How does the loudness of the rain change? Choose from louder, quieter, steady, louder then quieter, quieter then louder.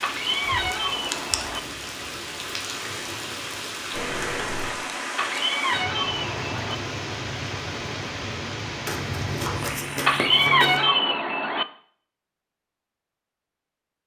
steady.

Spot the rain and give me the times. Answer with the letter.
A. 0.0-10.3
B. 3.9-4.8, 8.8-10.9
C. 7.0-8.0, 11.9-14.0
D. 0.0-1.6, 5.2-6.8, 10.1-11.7
A.